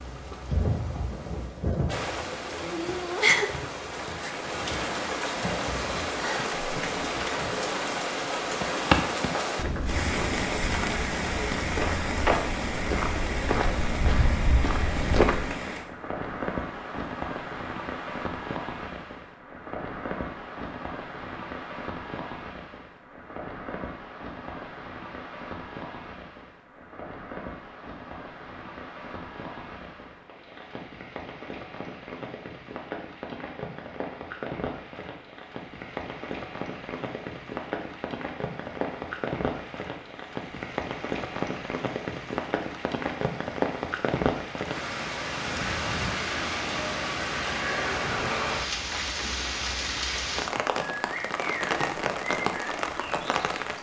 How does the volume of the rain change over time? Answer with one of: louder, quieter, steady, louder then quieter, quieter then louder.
quieter then louder.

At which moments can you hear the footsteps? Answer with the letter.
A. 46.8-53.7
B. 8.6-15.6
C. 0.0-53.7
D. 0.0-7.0
B.